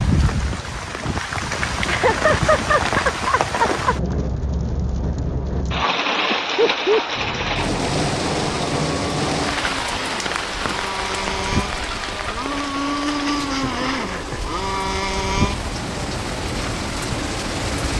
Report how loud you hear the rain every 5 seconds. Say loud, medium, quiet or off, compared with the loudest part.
loud, loud, medium, medium.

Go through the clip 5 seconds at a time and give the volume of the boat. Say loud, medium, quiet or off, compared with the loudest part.
off, medium, loud, loud.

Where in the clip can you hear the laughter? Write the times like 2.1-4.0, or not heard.
1.9-4.0, 6.2-7.0, 13.4-14.4.